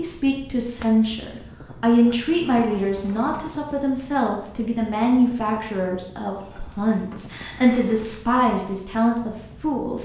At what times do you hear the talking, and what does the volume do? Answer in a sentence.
The talking can be heard from 0.0 to 10.0 s, at a steady volume.